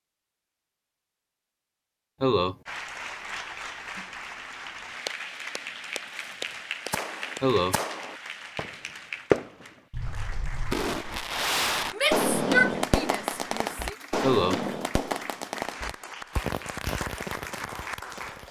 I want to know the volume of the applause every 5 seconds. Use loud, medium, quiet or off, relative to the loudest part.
loud, loud, medium, loud.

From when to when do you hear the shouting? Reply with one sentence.
The shouting can be heard from 11.9 to 13.8 s.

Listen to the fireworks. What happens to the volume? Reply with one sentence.
The volume of the fireworks goes up, then down.